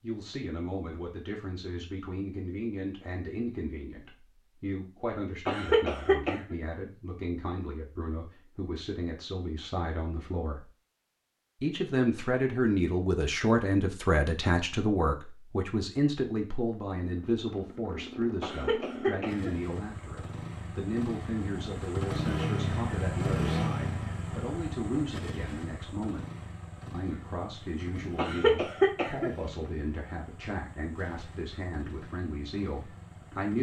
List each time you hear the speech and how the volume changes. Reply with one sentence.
The speech can be heard from 0.0 to 10.7 s, at a steady volume; from 11.6 to 26.2 s, getting quieter; and from 26.9 to 33.5 s, at a steady volume.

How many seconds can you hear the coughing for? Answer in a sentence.
You can hear the coughing for 3 seconds altogether.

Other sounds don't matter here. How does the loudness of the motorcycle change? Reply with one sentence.
The volume of the motorcycle goes up, then down.